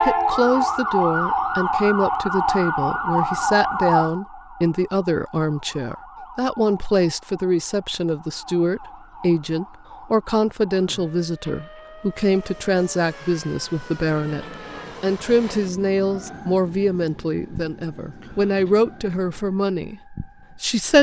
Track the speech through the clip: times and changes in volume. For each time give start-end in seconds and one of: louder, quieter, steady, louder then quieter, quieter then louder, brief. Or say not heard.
0.0-20.9 steady.